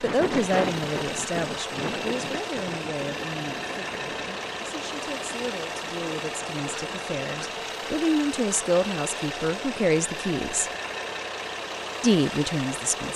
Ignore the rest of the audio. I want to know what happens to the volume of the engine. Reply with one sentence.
The loudness of the engine stays about the same.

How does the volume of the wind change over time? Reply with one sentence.
The volume of the wind goes down.